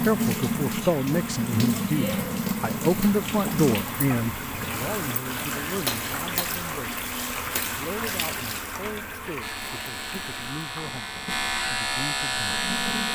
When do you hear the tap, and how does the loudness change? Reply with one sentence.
You can hear the tap from 0.0 to 13.0 s, getting quieter.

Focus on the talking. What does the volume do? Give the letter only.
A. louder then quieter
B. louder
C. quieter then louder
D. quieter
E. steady
D.